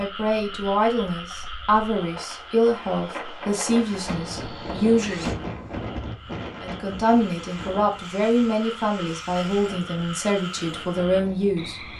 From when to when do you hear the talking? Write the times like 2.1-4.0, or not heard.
0.0-5.3, 6.6-11.8.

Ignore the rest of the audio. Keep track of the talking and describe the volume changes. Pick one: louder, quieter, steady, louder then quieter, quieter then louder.
steady.